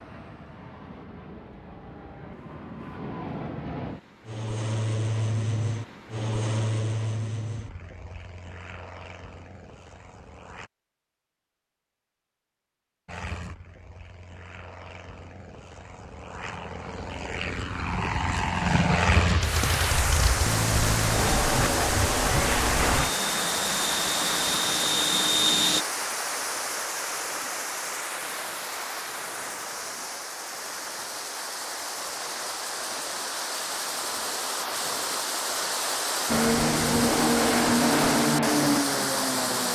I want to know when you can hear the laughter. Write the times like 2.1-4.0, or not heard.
not heard.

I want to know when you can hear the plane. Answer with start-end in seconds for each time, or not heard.
0.0-10.7, 13.1-25.9, 36.2-39.6.